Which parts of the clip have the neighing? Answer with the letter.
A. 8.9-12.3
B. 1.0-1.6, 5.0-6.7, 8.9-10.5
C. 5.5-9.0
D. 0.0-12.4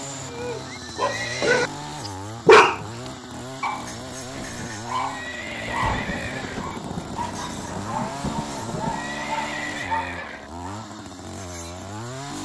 B.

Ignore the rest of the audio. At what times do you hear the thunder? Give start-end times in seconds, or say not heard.
5.5-9.0.